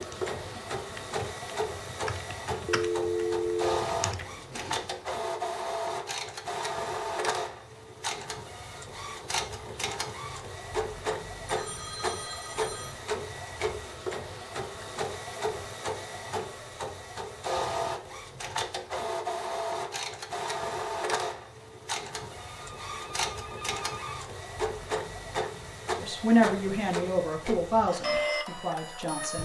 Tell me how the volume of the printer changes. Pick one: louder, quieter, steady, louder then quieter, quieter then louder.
steady.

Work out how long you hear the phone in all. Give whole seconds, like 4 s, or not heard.
5 s.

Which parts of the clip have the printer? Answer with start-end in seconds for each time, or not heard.
0.0-29.4.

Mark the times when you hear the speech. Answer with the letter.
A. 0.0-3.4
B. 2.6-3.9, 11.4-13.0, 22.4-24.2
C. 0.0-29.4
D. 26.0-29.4
D.